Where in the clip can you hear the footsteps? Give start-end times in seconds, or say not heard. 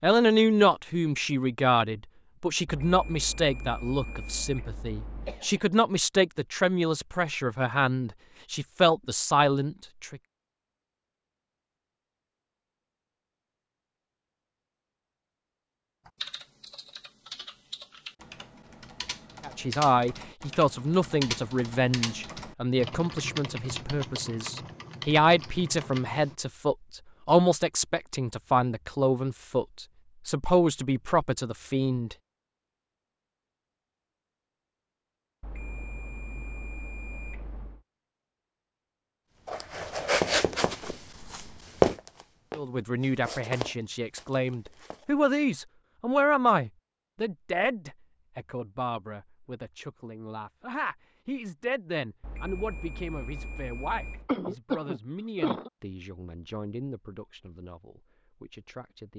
39.5-45.0.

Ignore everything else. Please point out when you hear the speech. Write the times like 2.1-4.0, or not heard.
0.0-10.2, 19.4-32.1, 42.5-59.1.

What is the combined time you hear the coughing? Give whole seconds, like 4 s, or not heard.
3 s.